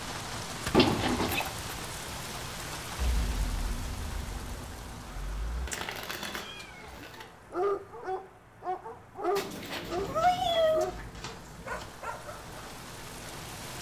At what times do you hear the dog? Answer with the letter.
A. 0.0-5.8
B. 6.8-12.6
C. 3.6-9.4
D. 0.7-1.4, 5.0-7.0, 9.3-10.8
B.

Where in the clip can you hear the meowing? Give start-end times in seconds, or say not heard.
0.7-1.4, 5.0-7.0, 9.3-10.8.